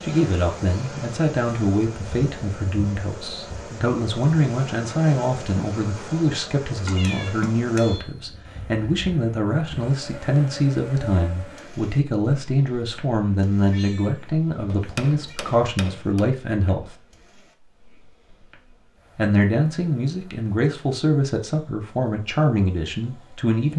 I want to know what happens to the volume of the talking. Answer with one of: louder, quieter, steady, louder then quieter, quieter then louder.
steady.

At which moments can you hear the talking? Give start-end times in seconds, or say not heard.
0.0-16.9, 19.1-23.7.